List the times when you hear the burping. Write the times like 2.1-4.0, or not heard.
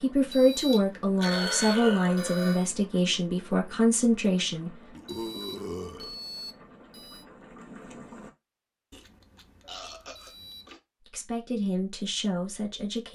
0.7-2.7, 5.0-6.2, 8.9-10.8.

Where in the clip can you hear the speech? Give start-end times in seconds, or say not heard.
0.0-4.7, 11.1-13.1.